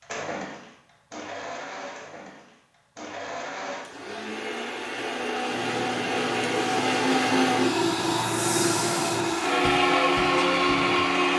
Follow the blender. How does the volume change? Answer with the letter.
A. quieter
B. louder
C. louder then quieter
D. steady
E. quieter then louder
B.